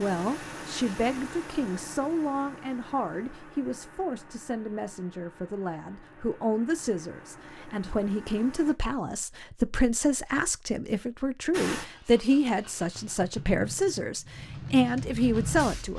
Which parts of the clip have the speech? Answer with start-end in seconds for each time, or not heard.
0.0-15.9.